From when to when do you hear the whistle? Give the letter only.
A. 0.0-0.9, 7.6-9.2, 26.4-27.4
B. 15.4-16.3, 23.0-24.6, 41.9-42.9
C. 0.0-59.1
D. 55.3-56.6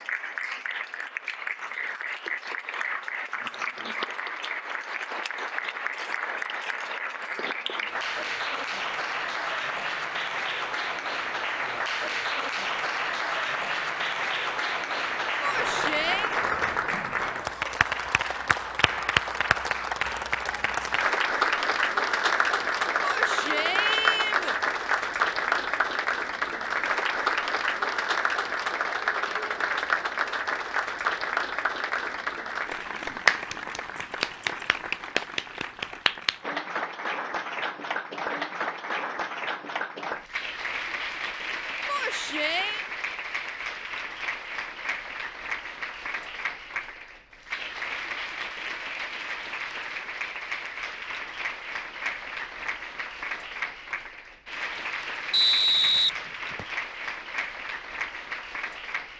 D.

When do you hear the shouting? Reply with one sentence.
The shouting can be heard from 15.4 to 16.3 s, from 23.0 to 24.6 s and from 41.9 to 42.9 s.